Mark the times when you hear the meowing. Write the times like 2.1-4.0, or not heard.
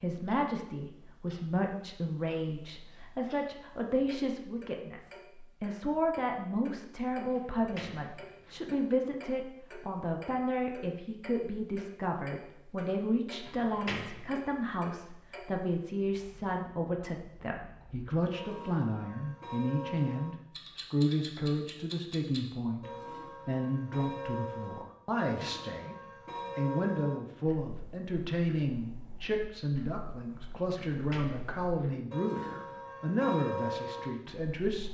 not heard.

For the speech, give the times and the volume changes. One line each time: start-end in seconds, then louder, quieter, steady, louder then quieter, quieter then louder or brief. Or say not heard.
0.0-34.9 steady.